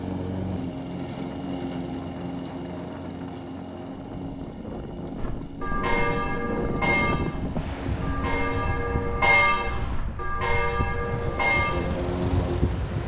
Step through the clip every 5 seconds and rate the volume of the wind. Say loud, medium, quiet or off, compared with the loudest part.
medium, loud, loud.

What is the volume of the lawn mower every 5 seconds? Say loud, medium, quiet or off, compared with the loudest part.
loud, medium, loud.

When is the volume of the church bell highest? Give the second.
9 s.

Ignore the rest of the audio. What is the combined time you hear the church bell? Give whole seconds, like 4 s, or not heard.
7 s.